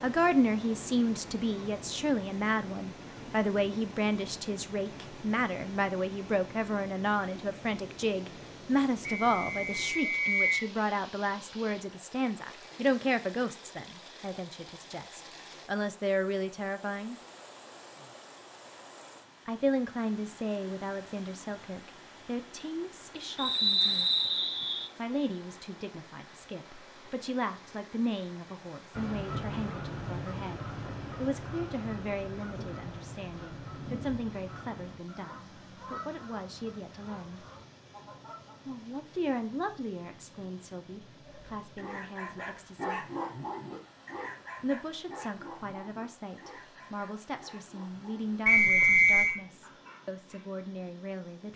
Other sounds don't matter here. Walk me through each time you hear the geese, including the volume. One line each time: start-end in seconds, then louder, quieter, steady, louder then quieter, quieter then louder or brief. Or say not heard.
28.9-38.5 quieter.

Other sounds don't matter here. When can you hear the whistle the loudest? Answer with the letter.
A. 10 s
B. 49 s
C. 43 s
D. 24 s
B.